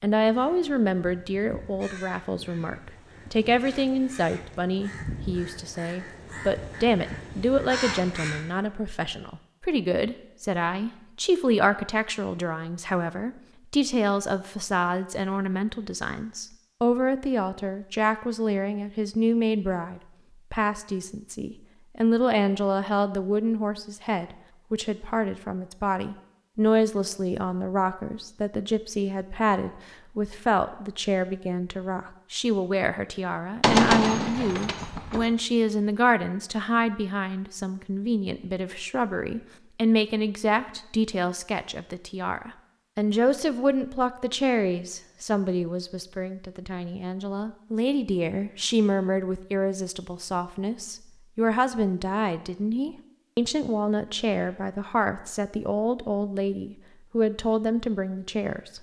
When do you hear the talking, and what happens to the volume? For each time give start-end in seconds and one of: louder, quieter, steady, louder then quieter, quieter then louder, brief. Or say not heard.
0.0-58.7 steady.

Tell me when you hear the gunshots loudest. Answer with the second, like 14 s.
34 s.